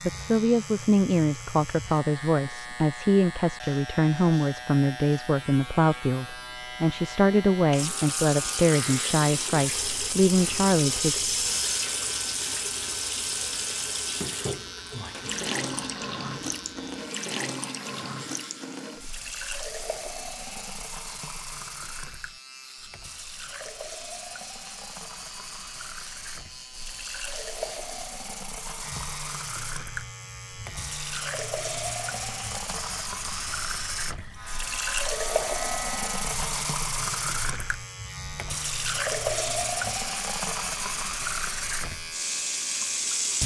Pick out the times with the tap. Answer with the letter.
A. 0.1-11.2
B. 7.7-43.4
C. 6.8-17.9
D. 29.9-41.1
B.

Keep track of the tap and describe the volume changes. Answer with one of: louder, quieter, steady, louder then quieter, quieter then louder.
quieter then louder.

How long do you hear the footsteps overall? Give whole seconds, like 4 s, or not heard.
not heard.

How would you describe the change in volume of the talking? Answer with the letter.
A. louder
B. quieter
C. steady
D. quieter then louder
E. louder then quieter
C.